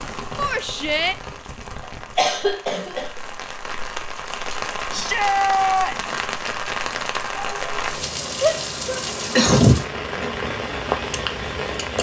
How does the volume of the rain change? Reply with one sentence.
The volume of the rain goes up.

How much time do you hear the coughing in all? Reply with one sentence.
The coughing can be heard for 2 seconds in total.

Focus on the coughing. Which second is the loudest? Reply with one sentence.
The loudest moment of the coughing is at 10 seconds.